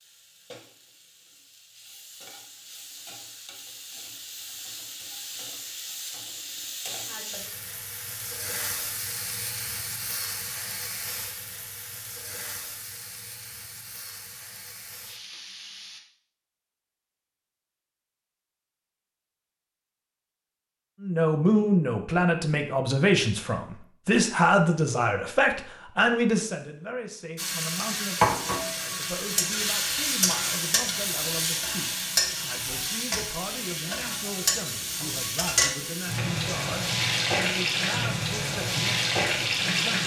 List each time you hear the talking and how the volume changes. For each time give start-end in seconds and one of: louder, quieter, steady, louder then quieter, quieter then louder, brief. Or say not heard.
21.0-40.0 quieter.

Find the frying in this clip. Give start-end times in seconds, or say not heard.
0.0-16.0, 27.4-40.0.